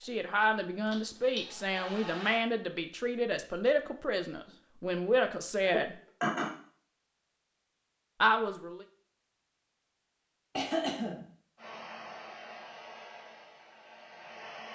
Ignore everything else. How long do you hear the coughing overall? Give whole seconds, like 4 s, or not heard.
2 s.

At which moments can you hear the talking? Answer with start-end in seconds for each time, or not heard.
0.0-6.0, 8.2-8.8.